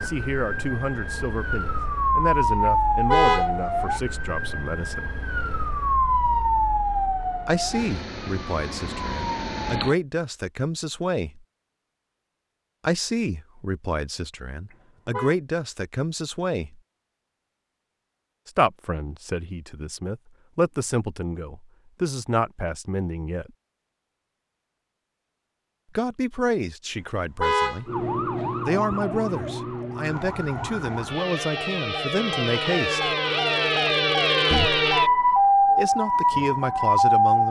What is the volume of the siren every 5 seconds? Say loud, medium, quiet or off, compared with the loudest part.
medium, medium, off, off, off, medium, medium, loud.